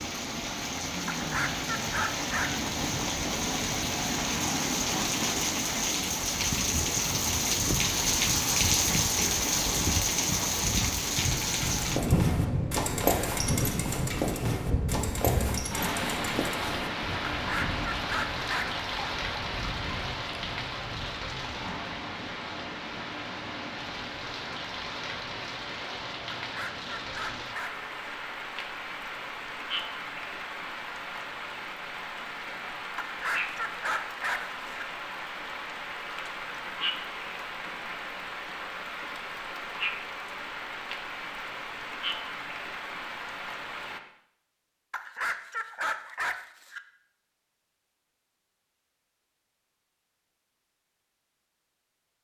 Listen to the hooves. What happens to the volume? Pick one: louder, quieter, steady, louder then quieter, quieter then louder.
quieter.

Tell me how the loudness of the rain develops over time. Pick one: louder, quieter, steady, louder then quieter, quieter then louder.
quieter.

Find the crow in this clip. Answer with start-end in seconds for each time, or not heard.
not heard.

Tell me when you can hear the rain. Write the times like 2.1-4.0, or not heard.
0.0-44.0.